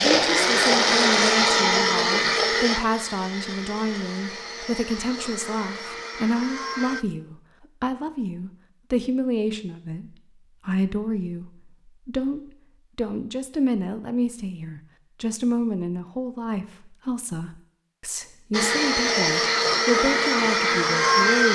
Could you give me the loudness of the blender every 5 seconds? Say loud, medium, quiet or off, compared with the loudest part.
loud, quiet, off, loud, loud.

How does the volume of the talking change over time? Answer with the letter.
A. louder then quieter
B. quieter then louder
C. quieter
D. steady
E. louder
D.